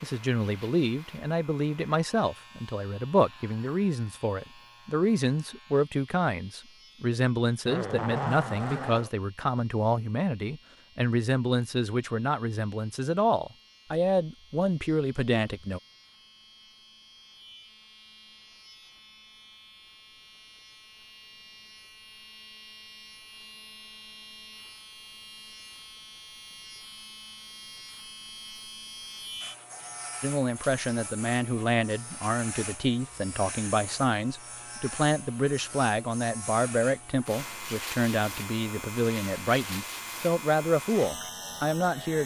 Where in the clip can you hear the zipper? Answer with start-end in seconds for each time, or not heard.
7.7-9.1.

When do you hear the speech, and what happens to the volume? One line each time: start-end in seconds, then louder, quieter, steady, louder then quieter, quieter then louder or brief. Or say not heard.
0.0-15.8 steady
30.2-42.2 steady.